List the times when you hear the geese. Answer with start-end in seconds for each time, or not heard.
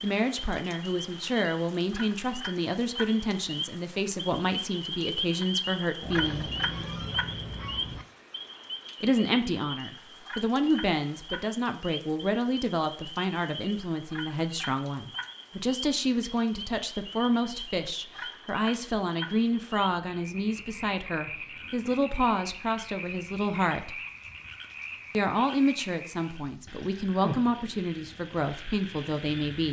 6.0-8.1.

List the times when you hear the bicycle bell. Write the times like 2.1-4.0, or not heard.
not heard.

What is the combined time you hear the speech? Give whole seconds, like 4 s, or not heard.
26 s.